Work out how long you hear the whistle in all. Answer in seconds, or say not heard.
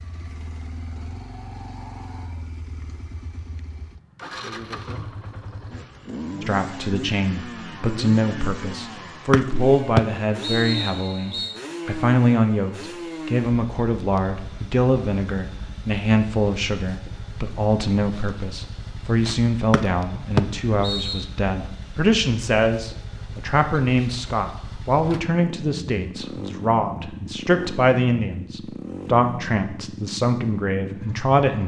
4 s.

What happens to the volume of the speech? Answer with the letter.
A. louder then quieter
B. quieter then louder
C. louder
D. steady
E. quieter
D.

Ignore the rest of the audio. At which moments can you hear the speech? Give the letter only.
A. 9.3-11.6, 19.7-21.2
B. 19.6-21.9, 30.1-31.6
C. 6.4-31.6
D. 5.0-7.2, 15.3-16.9
C.